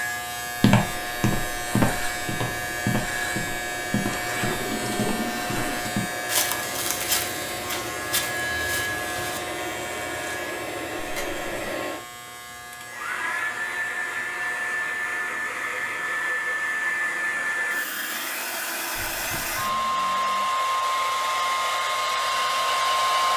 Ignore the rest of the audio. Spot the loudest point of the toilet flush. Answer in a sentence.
The volume of the toilet flush peaks at 5 seconds.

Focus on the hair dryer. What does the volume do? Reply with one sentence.
The loudness of the hair dryer goes up.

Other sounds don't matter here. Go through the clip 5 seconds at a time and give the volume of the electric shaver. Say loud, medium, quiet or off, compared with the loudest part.
loud, loud, medium, quiet, medium.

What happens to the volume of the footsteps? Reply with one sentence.
The volume of the footsteps goes down.